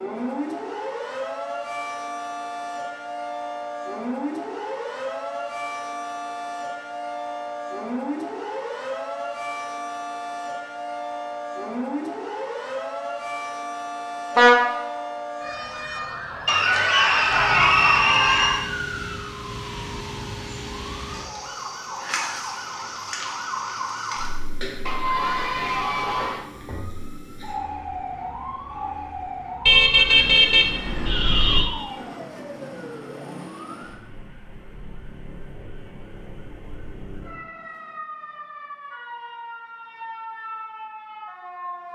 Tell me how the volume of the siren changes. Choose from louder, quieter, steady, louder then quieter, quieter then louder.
quieter.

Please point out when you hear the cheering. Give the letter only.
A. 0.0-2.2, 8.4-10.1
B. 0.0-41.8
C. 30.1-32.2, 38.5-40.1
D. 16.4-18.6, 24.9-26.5
D.